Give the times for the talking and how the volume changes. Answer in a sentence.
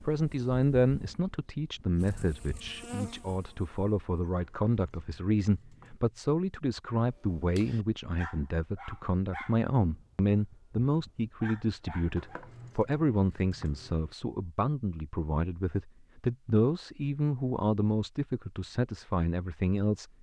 The talking can be heard from 0.0 to 20.1 s, at a steady volume.